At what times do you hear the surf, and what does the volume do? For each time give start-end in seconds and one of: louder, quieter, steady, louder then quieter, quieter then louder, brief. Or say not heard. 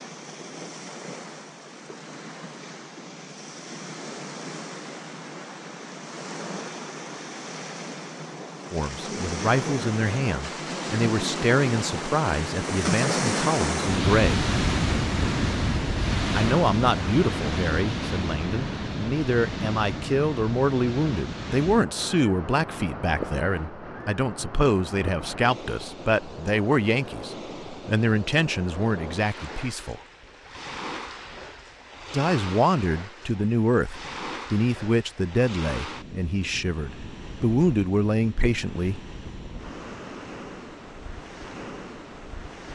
0.0-42.7 louder then quieter.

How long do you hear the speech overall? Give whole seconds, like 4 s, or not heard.
26 s.